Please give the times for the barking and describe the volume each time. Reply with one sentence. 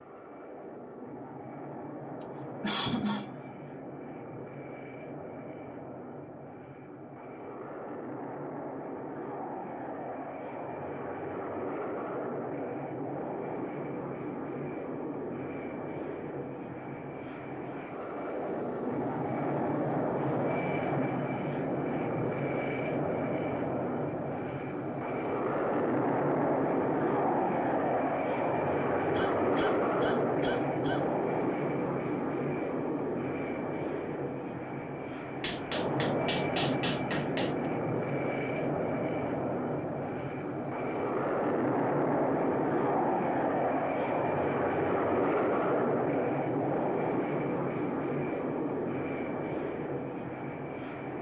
You can't hear the barking here.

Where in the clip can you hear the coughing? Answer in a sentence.
The coughing can be heard from 2.2 to 3.3 s and from 29.1 to 31.1 s.